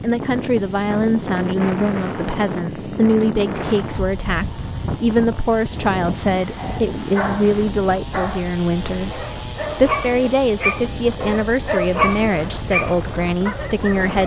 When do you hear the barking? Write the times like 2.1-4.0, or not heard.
6.4-14.2.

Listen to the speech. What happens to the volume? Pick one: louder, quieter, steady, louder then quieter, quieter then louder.
steady.